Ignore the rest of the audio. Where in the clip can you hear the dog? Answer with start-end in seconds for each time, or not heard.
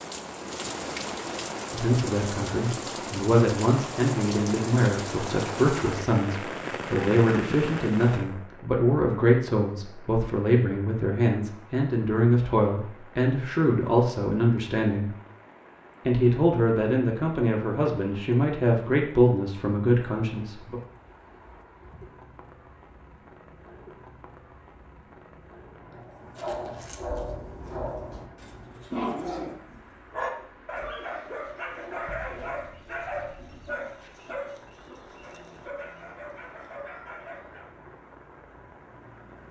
25.9-37.7.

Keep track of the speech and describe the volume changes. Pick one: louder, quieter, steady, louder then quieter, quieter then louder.
steady.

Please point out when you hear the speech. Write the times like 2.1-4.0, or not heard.
1.7-15.2, 16.1-20.8.